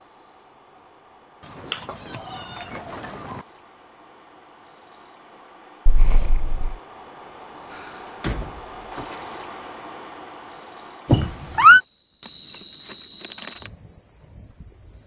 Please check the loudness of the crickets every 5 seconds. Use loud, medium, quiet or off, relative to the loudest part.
medium, loud, medium.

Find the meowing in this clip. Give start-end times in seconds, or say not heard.
1.7-3.4, 5.8-6.8, 11.1-11.8.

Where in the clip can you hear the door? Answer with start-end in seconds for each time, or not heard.
7.7-9.1.